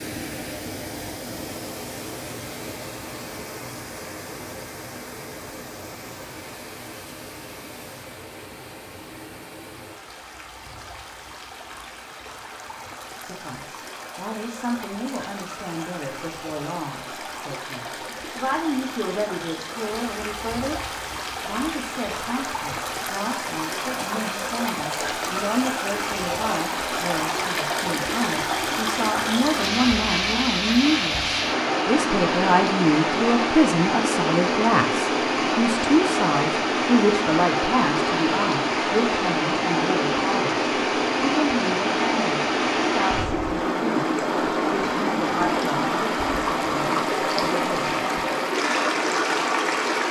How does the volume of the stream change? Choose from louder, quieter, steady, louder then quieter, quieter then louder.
louder.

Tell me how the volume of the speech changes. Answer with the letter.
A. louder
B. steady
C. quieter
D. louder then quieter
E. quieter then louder
D.